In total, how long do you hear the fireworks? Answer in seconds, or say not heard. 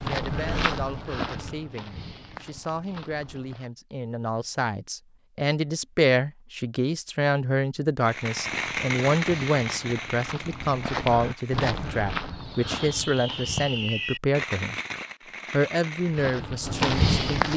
8 s.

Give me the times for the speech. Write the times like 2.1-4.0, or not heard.
0.0-14.8, 15.5-17.5.